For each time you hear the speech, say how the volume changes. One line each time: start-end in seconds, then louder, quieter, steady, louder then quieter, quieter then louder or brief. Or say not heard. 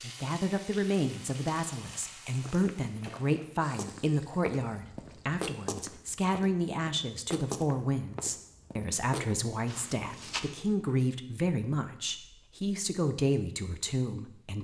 0.0-14.5 steady.